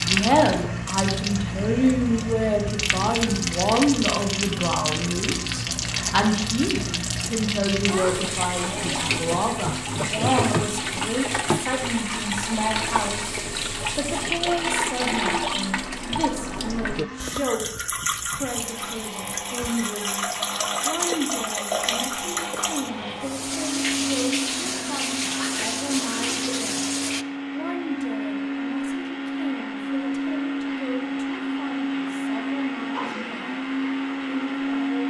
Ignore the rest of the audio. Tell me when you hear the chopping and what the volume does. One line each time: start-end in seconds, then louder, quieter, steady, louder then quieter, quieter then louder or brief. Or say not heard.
not heard.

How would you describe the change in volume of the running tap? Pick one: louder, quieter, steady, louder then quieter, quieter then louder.
steady.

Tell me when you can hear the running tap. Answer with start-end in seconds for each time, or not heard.
0.0-27.2.